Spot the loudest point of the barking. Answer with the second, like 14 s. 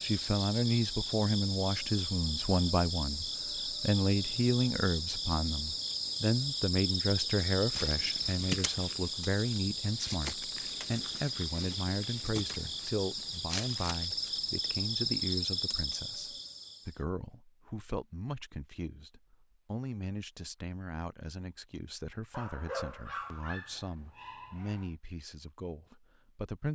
23 s.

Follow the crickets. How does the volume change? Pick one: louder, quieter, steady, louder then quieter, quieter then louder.
steady.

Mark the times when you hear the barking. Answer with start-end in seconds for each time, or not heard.
22.3-24.9.